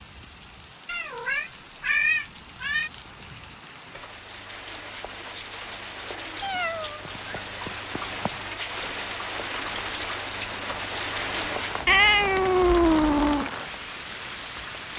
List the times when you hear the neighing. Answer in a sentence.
You can't hear the neighing here.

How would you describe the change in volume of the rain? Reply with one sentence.
The volume of the rain goes up.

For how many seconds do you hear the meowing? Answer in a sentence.
The meowing can be heard for 6 seconds in total.